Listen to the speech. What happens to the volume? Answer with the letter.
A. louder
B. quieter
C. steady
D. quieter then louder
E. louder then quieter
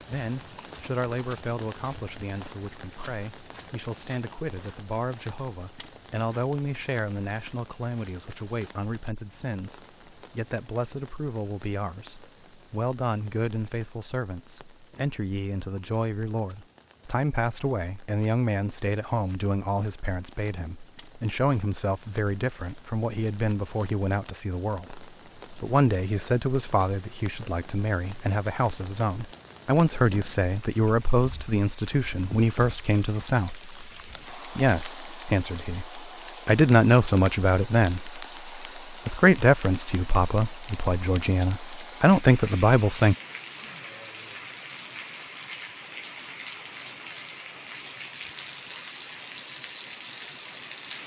A.